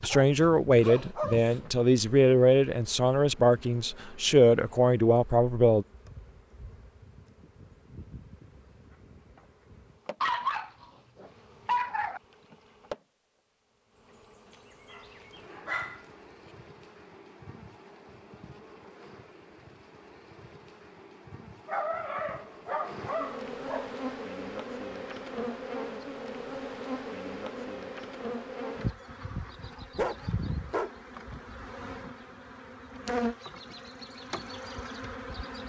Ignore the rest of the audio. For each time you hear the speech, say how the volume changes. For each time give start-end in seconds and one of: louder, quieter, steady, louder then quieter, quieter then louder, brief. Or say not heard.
0.0-5.8 steady.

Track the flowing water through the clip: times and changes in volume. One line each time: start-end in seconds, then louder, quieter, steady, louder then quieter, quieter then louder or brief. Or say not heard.
not heard.